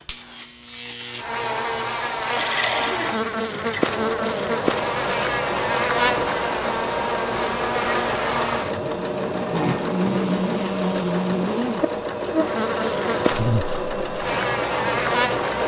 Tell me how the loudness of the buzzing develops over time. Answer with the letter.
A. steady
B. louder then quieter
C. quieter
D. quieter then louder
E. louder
A.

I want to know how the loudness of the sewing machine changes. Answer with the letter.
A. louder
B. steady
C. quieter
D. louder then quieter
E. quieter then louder
B.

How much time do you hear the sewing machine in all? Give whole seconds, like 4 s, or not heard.
13 s.